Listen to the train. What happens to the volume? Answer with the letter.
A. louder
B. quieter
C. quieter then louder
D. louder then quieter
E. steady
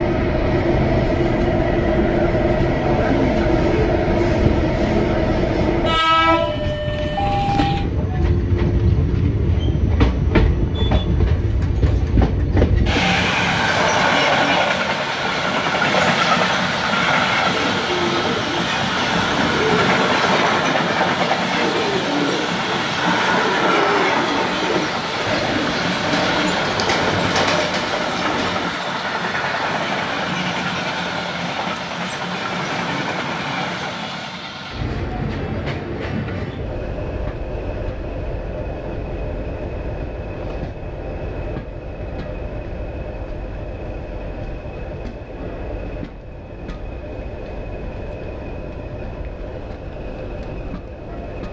B.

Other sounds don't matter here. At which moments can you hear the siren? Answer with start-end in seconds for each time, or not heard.
not heard.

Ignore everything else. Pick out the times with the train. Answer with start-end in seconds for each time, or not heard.
0.0-51.4.